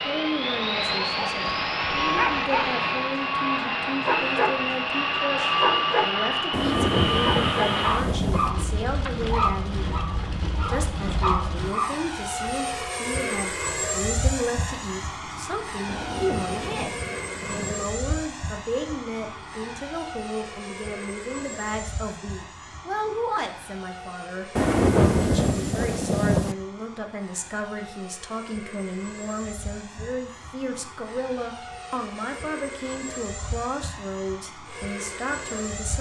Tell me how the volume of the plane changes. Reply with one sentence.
The loudness of the plane goes down.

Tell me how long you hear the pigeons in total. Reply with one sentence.
The pigeons can't be heard in this clip.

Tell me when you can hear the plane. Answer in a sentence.
The plane can be heard from 0.0 to 35.9 s.